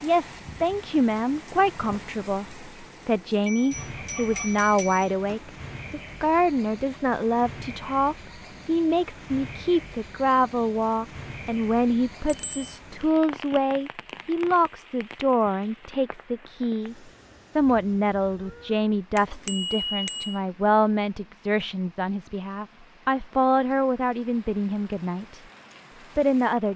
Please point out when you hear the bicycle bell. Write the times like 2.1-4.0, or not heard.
3.5-5.5, 12.2-12.8, 19.1-20.4.